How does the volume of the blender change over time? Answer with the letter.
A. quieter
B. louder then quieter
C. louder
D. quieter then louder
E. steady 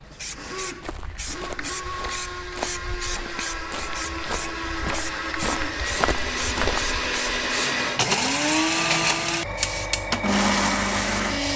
C.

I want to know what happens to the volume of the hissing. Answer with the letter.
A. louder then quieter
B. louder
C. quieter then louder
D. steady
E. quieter
B.